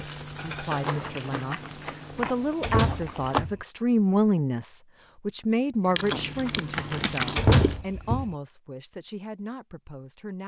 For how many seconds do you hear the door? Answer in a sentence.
You can hear the door for 3 seconds altogether.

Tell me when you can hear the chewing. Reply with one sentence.
You can hear the chewing from 0.8 to 3.5 s and from 6.0 to 7.8 s.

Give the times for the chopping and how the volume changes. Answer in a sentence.
The chopping can't be heard in this clip.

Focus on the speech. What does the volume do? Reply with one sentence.
The loudness of the speech goes up, then down.